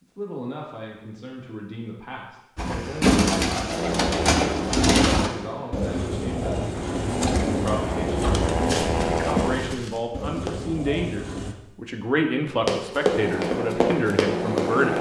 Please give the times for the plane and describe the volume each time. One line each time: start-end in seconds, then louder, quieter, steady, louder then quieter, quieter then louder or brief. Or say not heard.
3.5-9.8 quieter then louder
13.1-14.9 brief.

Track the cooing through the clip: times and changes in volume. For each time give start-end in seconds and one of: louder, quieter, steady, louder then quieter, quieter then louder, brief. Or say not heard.
2.5-11.6 quieter.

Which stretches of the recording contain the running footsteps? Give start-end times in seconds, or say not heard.
8.6-10.6, 12.7-14.9.